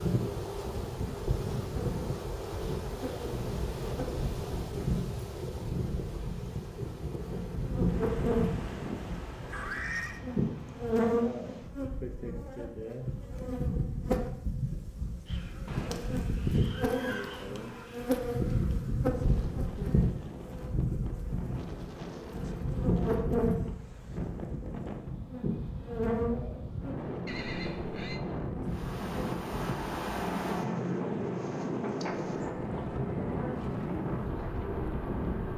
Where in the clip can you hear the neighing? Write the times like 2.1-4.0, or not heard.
9.5-10.2, 15.7-17.9, 27.2-28.2.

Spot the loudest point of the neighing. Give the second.
10 s.